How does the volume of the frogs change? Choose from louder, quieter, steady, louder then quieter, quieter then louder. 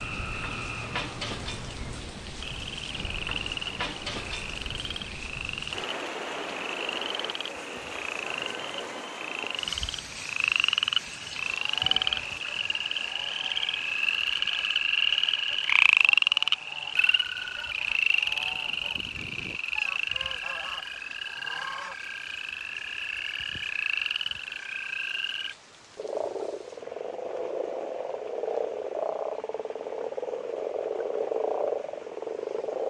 louder then quieter.